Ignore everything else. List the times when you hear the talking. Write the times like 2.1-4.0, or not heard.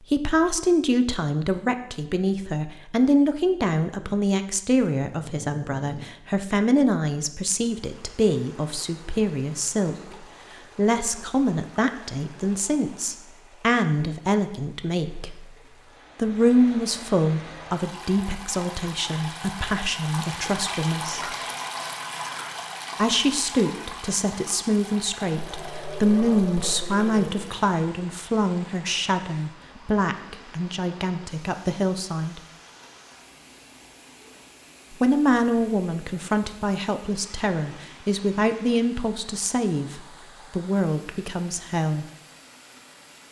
0.1-9.9, 10.8-15.3, 16.1-21.3, 22.9-32.4, 34.9-42.0.